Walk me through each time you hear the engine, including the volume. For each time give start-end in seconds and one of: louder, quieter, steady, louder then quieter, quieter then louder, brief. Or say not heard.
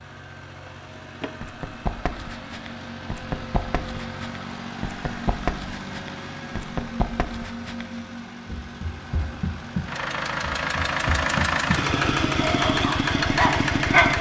0.0-14.1 louder.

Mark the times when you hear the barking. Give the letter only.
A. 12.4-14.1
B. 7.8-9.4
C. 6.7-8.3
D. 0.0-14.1
A.